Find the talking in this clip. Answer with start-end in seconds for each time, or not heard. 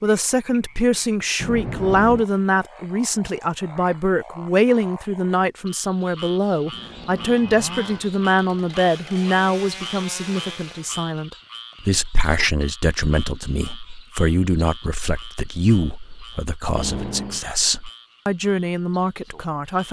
0.0-19.8.